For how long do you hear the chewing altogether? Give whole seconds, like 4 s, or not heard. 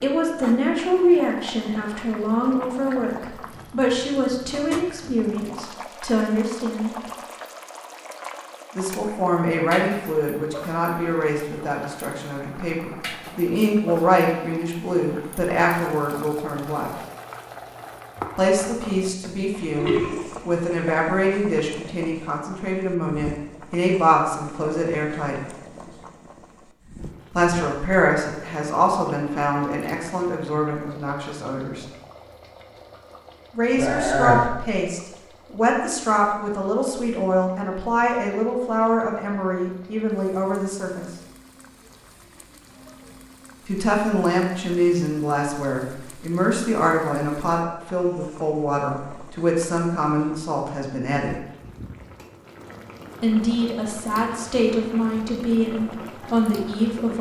not heard.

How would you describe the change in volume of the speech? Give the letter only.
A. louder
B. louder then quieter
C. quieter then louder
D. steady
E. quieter
D.